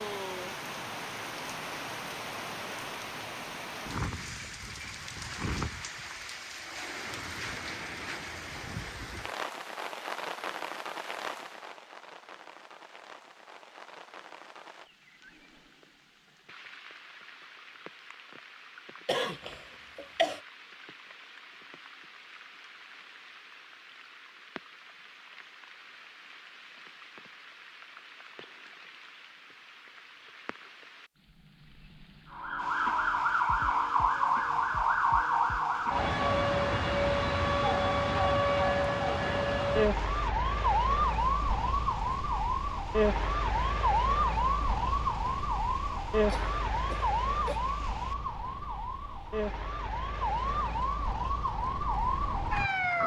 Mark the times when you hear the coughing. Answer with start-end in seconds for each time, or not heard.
19.1-20.4, 46.2-47.6.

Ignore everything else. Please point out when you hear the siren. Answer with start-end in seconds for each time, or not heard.
32.3-53.0.